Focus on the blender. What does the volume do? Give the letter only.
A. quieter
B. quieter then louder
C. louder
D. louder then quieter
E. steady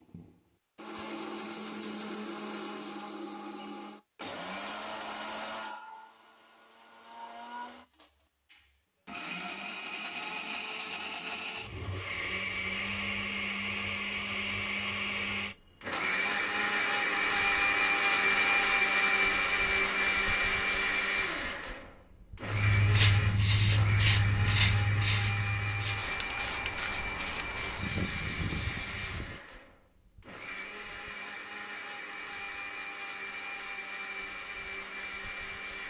D.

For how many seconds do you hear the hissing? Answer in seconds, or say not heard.
7 s.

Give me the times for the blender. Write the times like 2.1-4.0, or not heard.
0.0-35.8.